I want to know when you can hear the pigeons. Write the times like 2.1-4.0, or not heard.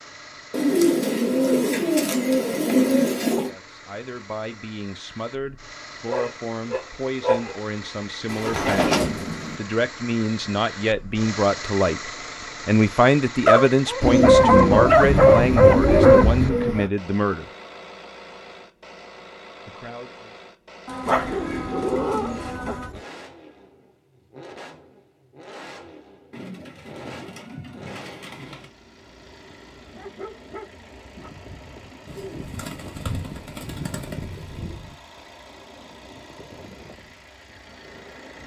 0.5-3.5, 8.3-9.6, 14.0-16.9, 20.9-22.9, 26.3-28.7, 32.0-35.0.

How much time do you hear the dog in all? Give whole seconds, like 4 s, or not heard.
8 s.